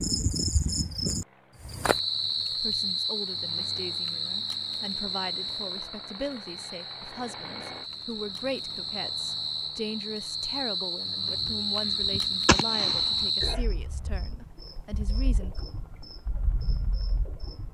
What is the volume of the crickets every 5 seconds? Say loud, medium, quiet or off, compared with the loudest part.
loud, medium, loud, quiet.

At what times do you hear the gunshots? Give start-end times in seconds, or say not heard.
11.4-13.2.